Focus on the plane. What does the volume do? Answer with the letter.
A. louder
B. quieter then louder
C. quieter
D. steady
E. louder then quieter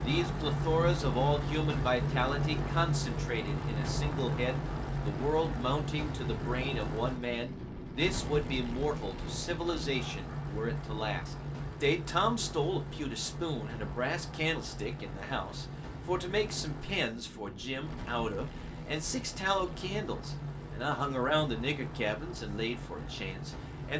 C.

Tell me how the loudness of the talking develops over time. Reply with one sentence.
The volume of the talking stays about the same.